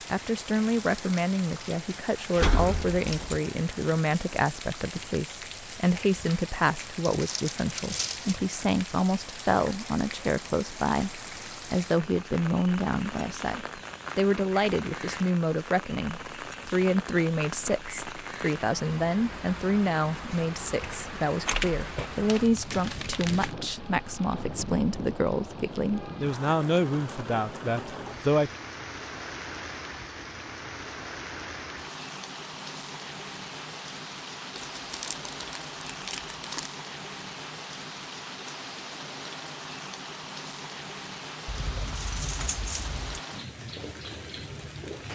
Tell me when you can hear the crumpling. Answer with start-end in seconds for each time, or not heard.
7.0-8.4, 22.2-23.6, 34.8-36.7.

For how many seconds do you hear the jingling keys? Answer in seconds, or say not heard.
5 s.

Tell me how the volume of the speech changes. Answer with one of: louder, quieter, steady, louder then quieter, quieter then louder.
steady.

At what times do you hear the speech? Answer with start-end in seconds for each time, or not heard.
0.1-28.5.